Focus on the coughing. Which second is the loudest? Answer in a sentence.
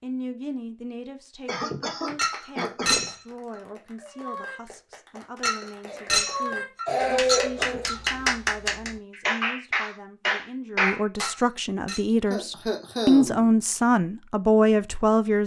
The volume of the coughing peaks at 7 seconds.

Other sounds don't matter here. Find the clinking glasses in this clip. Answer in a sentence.
You can hear the clinking glasses from 2.1 to 3.1 s, from 5.4 to 8.1 s and from 11.2 to 12.1 s.